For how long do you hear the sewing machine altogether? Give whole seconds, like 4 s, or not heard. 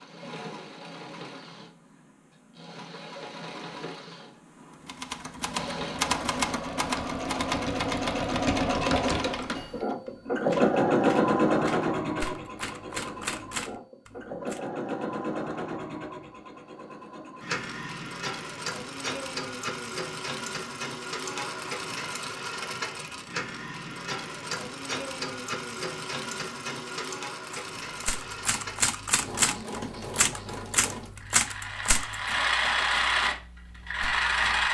35 s.